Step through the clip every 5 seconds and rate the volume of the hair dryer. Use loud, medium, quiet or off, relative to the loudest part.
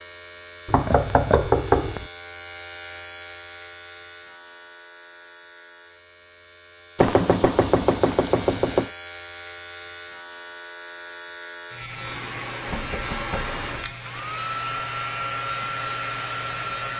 off, off, loud, loud.